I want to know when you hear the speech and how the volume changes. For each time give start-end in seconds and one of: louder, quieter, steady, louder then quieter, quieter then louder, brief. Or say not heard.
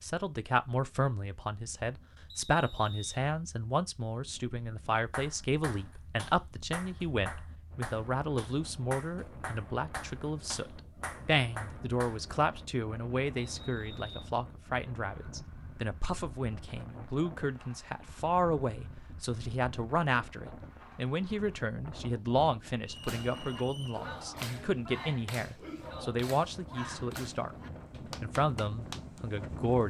0.0-27.6 steady
28.2-29.8 brief.